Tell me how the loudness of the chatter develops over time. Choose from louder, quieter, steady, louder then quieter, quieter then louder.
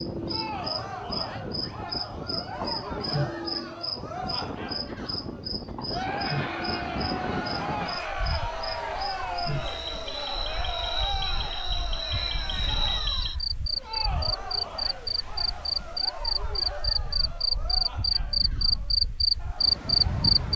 quieter.